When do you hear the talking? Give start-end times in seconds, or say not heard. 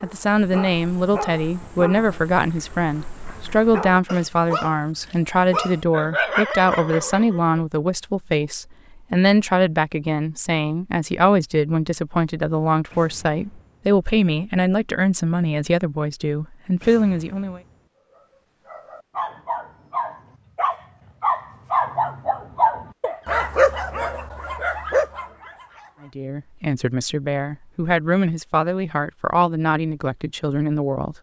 0.0-17.6, 26.0-31.1.